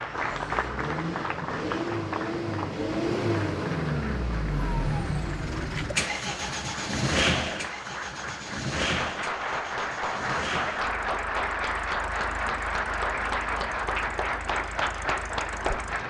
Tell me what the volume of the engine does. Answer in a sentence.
The volume of the engine goes down.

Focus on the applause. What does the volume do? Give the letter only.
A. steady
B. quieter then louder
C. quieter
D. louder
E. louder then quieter
B.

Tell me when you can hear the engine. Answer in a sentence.
You can hear the engine from 0.0 to 16.0 s.